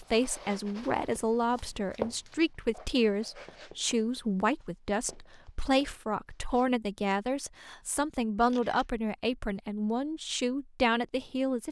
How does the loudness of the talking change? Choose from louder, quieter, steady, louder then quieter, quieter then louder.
steady.